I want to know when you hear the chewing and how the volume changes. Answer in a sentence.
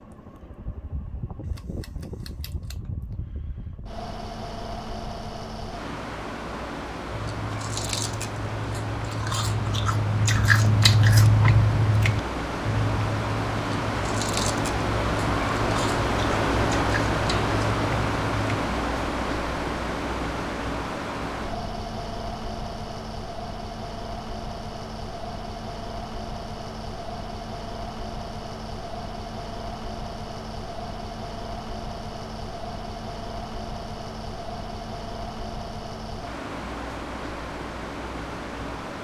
The chewing can be heard from 7.0 to 18.4 s, getting louder then quieter.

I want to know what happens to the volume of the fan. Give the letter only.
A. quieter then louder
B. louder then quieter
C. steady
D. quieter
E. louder
B.